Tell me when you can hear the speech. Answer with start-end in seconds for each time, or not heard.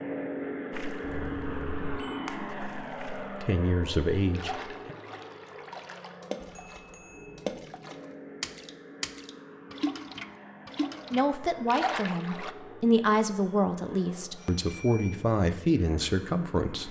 3.2-5.0, 11.1-16.8.